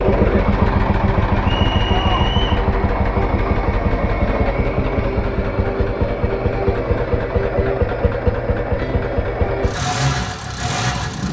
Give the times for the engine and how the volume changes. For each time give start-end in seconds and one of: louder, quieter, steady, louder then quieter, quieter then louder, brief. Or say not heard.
0.0-11.2 steady.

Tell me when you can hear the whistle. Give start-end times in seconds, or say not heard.
1.4-2.6.